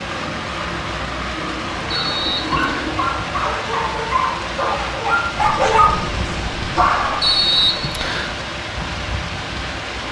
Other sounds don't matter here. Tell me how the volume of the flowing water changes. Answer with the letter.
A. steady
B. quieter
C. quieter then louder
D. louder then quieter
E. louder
A.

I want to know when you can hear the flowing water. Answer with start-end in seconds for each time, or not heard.
0.0-10.0.